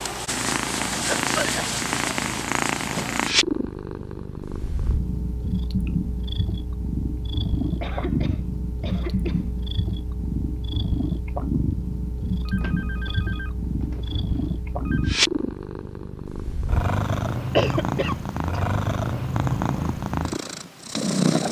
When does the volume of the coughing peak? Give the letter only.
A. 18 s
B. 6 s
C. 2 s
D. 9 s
A.